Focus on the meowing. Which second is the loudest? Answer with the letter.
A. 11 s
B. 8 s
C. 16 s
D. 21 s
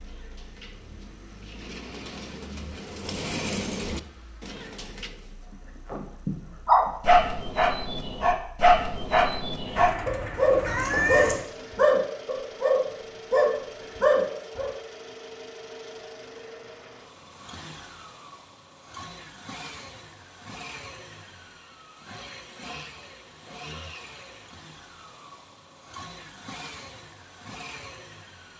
A.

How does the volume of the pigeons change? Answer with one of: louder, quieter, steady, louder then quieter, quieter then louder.
louder then quieter.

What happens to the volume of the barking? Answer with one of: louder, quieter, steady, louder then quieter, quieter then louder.
steady.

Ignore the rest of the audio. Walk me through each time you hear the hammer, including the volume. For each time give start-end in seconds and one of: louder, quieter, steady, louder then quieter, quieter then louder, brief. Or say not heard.
not heard.